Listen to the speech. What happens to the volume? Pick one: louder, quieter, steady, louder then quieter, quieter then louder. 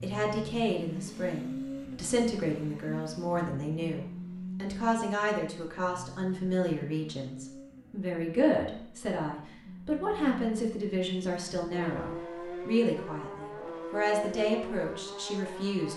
steady.